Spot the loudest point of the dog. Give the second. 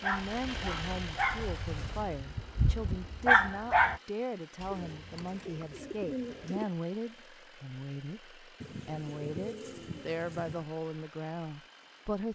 3 s.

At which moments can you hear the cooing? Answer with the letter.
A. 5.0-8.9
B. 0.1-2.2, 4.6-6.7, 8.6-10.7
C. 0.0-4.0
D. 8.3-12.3
B.